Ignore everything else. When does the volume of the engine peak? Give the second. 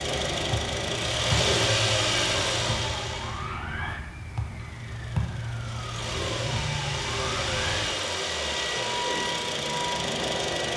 2 s.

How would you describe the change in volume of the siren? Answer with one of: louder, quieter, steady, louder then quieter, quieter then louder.
steady.